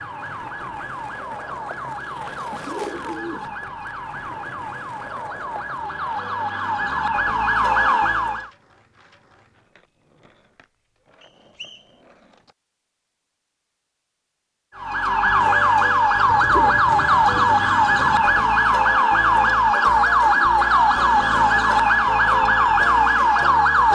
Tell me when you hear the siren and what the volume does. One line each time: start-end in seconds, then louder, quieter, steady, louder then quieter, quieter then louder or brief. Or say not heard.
0.0-8.5 louder
14.8-23.8 steady.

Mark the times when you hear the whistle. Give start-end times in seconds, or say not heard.
11.2-11.9.